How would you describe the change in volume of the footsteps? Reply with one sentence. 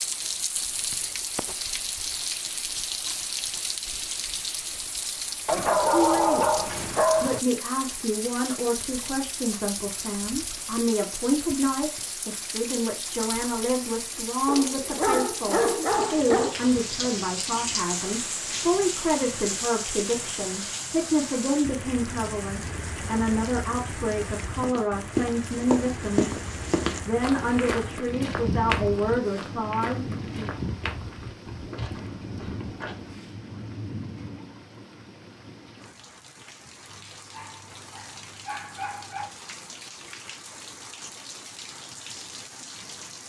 The loudness of the footsteps goes down.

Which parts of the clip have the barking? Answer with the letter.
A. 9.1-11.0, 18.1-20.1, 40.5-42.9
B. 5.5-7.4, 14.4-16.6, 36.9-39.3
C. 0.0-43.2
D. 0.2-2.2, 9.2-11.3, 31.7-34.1
B.